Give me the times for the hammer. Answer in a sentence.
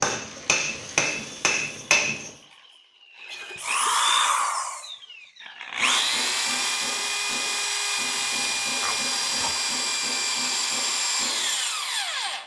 You can hear the hammer from 0.0 to 2.3 s and from 5.7 to 12.4 s.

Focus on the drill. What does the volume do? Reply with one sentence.
The loudness of the drill goes up.